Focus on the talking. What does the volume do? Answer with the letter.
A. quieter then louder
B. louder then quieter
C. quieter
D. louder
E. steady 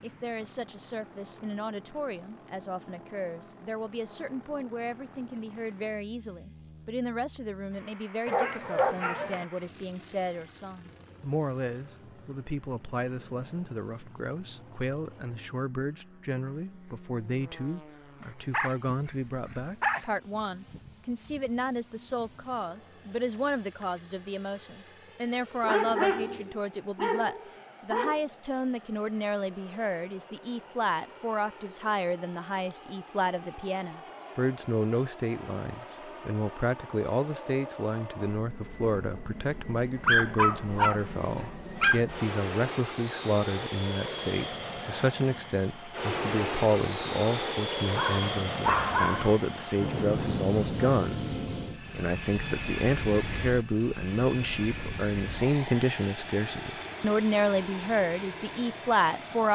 D.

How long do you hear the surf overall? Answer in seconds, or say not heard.
not heard.